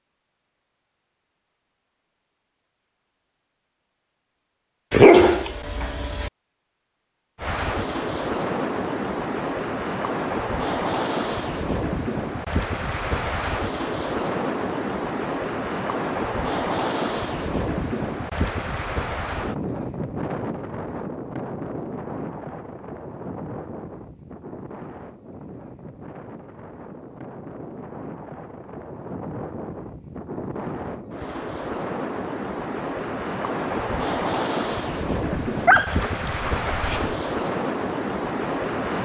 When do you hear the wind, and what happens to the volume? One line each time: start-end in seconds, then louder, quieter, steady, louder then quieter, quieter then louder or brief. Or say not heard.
7.3-39.0 quieter then louder.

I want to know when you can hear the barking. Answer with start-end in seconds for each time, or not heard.
4.9-6.3, 35.3-37.1.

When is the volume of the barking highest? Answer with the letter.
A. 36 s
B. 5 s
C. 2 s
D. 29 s
B.